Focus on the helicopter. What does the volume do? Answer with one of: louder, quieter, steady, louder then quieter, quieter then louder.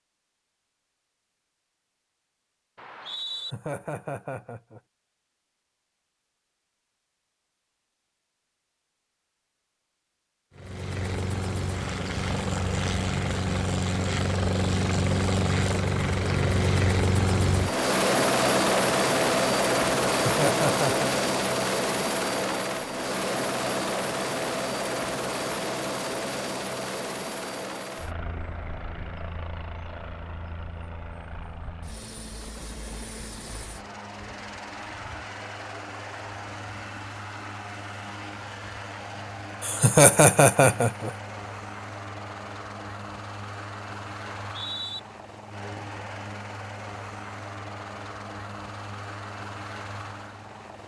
quieter.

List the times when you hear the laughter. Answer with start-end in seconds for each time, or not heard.
3.3-4.8, 20.2-21.1, 39.6-41.1.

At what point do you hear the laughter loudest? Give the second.
40 s.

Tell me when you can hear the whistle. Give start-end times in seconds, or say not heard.
2.8-3.5, 44.3-45.0.